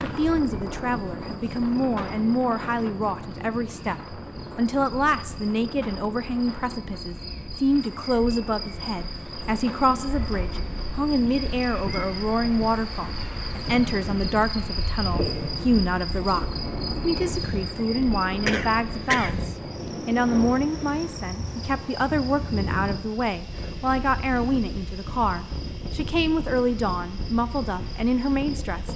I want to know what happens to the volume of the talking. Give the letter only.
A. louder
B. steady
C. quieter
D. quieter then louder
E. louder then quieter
B.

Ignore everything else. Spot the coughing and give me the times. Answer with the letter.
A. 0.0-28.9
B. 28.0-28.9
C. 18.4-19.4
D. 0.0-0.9
C.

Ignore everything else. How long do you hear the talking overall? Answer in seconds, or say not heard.
29 s.